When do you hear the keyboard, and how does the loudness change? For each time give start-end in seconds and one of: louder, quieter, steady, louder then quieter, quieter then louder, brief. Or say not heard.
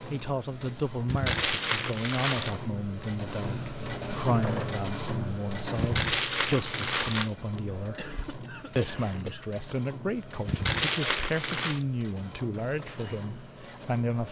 not heard.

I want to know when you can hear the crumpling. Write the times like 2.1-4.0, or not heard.
1.1-2.5, 5.8-7.3, 10.4-11.8.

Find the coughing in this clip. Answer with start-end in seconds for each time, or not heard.
8.0-9.5.